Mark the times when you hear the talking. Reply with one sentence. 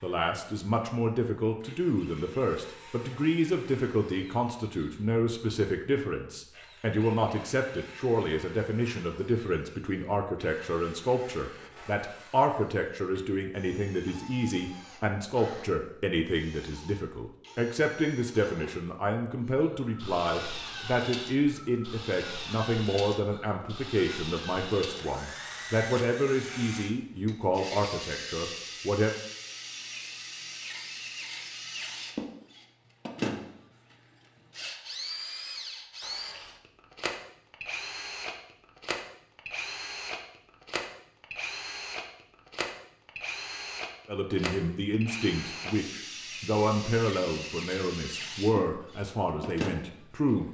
You can hear the talking from 0.0 to 29.1 s and from 44.0 to 50.4 s.